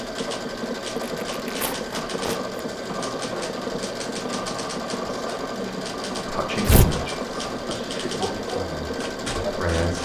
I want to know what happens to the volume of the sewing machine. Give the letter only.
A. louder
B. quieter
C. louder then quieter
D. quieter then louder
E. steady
E.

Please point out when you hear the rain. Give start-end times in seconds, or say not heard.
not heard.